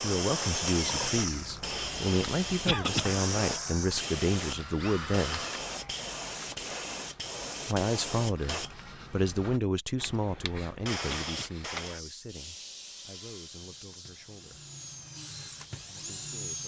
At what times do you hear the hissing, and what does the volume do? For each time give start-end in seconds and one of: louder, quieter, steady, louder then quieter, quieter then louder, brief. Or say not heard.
0.0-16.6 quieter.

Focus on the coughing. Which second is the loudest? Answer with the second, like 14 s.
3 s.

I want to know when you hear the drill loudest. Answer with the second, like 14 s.
1 s.